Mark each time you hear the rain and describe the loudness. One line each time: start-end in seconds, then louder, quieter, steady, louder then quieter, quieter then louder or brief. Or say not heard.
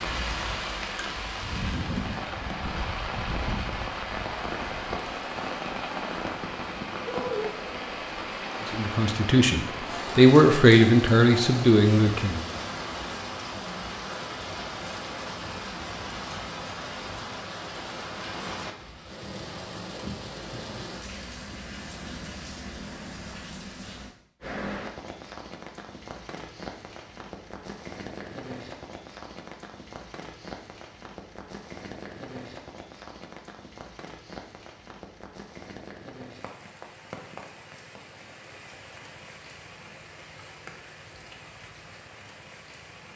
0.0-43.1 quieter.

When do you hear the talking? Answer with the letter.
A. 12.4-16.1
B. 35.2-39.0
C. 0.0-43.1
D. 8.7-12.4
D.